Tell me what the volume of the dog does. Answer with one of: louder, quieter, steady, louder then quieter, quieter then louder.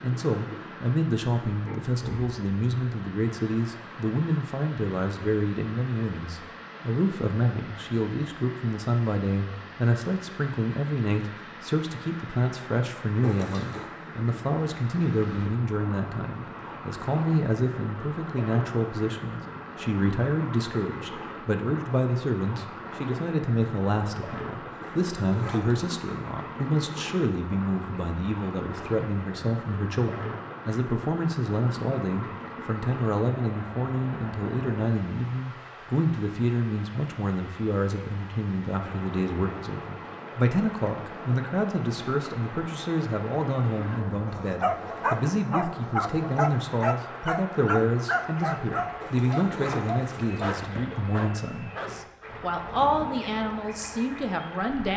quieter.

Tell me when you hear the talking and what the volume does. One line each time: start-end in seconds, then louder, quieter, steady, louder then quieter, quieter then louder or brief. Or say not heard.
0.0-54.9 steady.